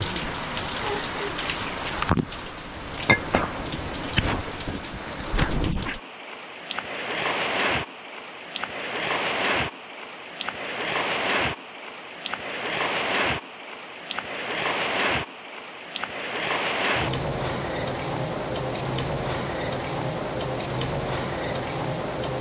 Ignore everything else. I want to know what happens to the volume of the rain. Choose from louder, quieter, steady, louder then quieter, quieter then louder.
steady.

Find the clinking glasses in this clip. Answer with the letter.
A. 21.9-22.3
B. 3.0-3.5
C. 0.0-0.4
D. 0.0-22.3
B.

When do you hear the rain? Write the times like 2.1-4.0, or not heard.
0.0-22.3.